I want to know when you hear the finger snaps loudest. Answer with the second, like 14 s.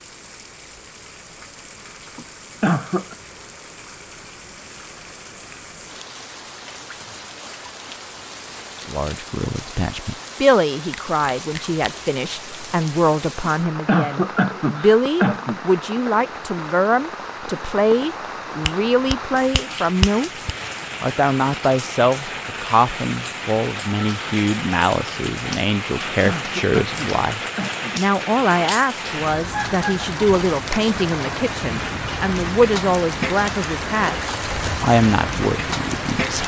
20 s.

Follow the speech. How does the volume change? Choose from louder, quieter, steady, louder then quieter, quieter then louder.
steady.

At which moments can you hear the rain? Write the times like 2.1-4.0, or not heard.
0.0-36.4.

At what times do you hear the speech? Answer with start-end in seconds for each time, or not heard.
8.8-36.4.